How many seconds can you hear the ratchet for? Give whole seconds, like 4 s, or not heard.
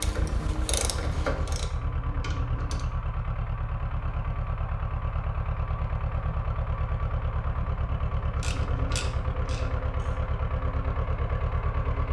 5 s.